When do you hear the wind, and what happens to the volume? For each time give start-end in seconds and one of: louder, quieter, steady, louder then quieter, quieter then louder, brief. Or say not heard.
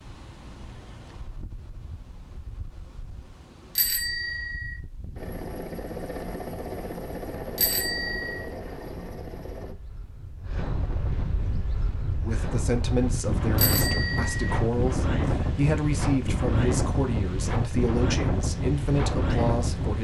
0.0-19.9 louder.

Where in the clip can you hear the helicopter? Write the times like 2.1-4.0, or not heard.
5.2-9.8.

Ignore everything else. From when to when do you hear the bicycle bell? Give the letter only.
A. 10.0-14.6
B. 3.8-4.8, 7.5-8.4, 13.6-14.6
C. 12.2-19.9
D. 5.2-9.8
B.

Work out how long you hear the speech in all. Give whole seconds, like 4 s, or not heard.
8 s.